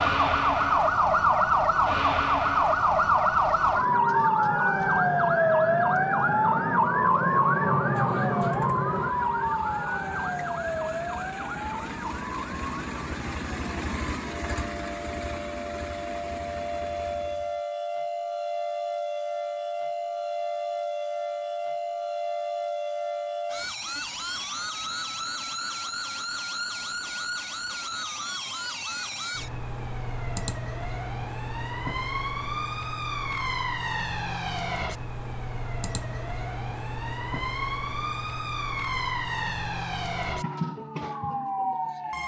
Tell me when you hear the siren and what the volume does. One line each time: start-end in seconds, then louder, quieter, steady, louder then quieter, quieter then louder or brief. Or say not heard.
0.0-42.2 quieter.